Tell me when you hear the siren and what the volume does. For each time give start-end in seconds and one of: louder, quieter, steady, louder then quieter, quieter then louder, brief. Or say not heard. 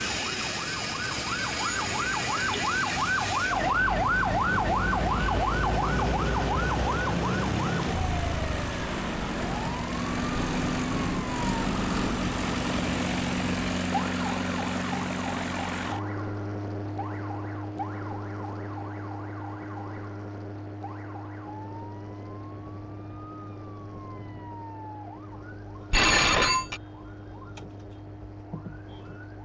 0.0-29.4 quieter.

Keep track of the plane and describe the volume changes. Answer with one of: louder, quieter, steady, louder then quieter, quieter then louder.
louder then quieter.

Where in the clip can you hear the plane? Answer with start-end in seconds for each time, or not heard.
0.0-29.4.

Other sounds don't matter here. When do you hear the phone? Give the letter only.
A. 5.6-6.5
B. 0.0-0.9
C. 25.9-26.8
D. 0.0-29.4
C.